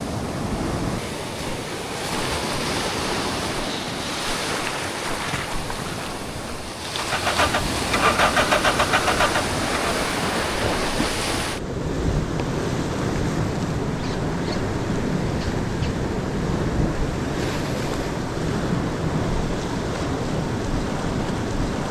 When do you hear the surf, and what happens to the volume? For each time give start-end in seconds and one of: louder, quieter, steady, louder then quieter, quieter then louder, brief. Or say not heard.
0.0-21.8 steady.